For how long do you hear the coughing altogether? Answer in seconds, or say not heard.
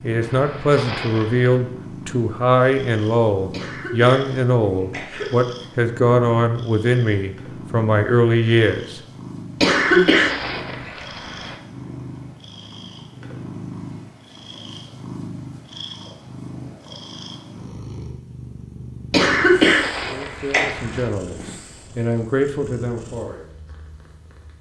5 s.